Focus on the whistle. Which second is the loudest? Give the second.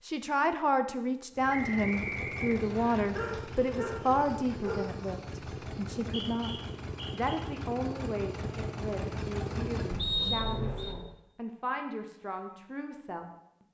10 s.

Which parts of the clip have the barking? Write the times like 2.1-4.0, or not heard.
3.1-5.0.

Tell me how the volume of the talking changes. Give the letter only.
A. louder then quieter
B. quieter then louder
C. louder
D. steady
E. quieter
E.